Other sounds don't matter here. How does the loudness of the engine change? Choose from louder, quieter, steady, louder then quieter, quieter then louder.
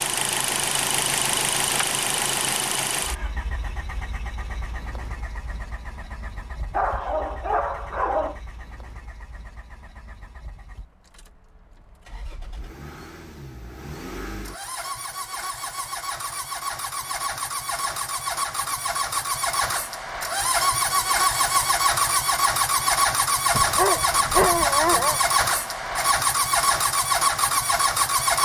quieter then louder.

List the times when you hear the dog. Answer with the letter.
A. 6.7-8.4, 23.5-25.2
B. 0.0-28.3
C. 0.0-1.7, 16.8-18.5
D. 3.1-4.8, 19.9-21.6
A.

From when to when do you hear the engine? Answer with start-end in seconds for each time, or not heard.
0.0-28.3.